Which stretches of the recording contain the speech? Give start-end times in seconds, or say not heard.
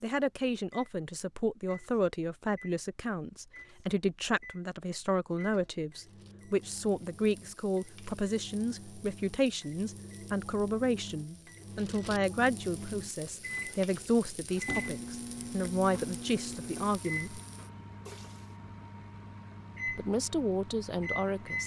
0.0-17.4, 19.9-21.6.